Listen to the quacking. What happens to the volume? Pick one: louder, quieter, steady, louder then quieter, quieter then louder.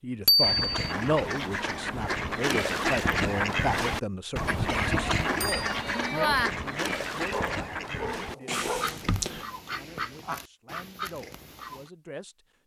quieter.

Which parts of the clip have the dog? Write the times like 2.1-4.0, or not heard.
7.3-8.8.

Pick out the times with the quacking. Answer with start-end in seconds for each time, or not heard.
0.4-11.9.